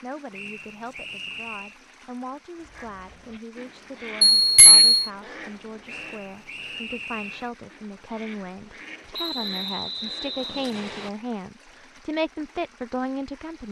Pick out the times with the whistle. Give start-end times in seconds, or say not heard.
0.3-1.8, 5.8-7.5, 9.1-11.1.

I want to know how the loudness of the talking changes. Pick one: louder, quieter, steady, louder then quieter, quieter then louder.
louder.